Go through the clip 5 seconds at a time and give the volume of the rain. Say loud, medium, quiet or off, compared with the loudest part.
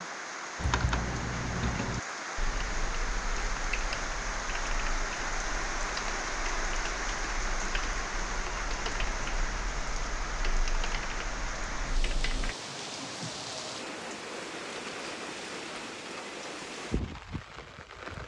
loud, loud, loud, medium.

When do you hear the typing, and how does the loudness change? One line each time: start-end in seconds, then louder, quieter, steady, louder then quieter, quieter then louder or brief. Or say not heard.
0.6-12.6 quieter.